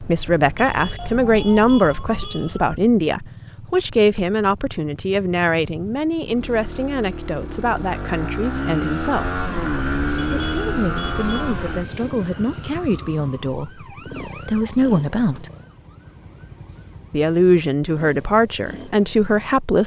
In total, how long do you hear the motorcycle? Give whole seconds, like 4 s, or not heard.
20 s.